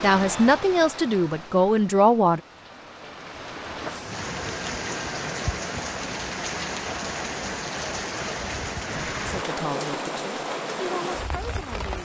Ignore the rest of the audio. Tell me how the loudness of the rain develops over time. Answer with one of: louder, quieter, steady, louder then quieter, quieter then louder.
louder.